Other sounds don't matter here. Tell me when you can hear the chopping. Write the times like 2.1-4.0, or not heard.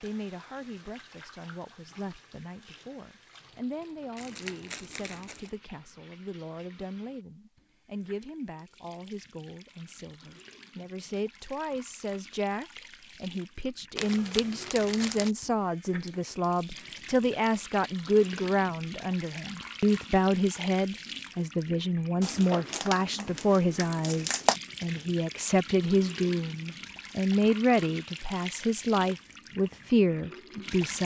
not heard.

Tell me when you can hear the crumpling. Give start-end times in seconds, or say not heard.
4.2-5.5, 13.9-15.3, 22.2-24.6.